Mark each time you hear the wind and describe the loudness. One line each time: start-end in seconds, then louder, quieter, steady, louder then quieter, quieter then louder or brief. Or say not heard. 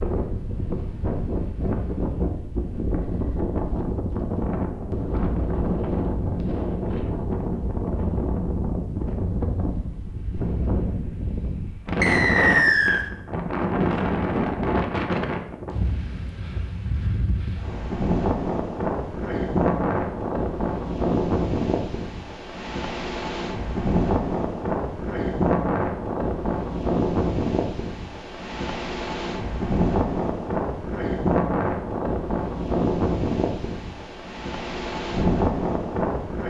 0.0-36.4 steady.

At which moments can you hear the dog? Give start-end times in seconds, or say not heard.
not heard.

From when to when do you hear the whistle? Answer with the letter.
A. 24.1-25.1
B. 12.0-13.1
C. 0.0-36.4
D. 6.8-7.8
B.